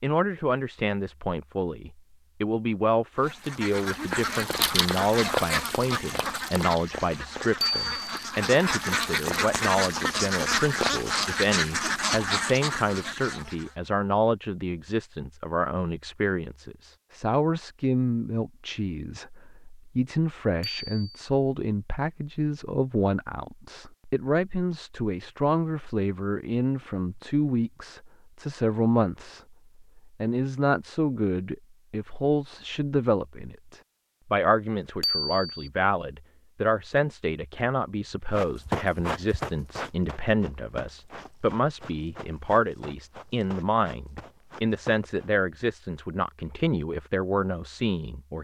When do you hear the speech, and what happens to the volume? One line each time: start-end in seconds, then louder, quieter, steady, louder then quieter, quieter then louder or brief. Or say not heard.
0.0-48.3 steady.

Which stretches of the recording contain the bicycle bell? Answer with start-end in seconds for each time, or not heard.
7.6-8.2, 20.6-21.1, 35.0-35.7.